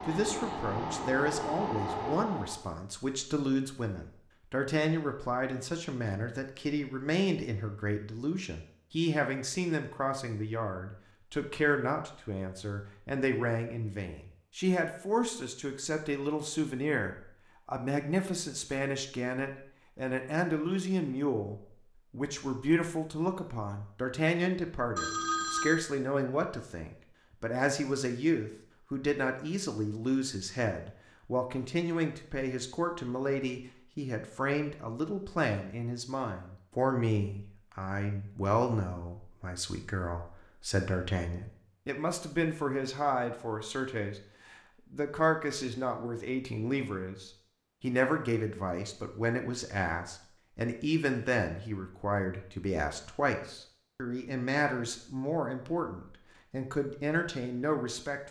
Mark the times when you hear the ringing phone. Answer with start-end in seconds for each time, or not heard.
24.9-25.9.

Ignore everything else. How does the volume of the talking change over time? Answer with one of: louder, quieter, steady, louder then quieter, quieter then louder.
steady.